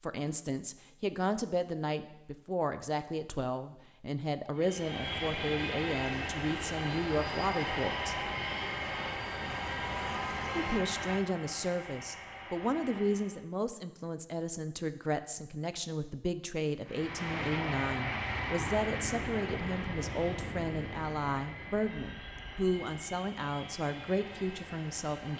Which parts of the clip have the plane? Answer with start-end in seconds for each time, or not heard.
4.5-13.4, 16.9-25.3.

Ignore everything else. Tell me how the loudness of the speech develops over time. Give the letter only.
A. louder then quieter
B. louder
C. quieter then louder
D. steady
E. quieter
D.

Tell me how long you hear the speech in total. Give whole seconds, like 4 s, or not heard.
23 s.